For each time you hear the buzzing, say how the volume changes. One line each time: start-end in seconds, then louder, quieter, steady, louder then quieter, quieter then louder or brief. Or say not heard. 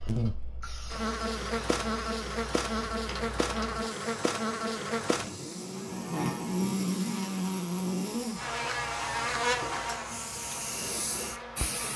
0.0-11.9 steady.